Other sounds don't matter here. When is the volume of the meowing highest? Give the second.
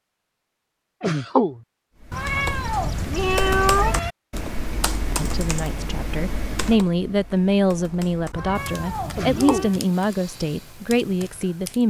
4 s.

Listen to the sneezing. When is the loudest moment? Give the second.
1 s.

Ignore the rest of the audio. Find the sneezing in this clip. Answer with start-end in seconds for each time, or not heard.
1.0-1.6, 9.2-9.7.